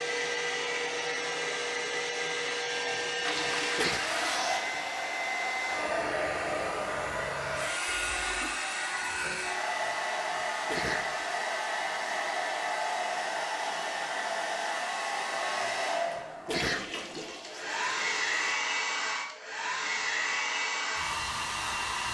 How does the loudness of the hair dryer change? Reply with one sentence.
The loudness of the hair dryer stays about the same.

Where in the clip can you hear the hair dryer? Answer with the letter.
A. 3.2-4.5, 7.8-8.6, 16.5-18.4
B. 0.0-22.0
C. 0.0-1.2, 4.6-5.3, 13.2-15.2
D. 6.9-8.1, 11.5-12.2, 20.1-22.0
B.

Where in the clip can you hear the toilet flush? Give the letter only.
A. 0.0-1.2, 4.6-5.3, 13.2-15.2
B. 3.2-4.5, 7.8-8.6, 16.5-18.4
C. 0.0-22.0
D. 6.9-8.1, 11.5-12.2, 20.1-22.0
B.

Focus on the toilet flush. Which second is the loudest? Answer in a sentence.
The volume of the toilet flush peaks at 4 seconds.